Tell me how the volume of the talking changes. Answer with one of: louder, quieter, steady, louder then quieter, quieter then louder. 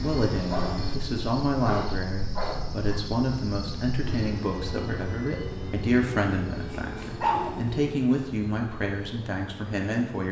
steady.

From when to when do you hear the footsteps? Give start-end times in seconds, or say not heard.
not heard.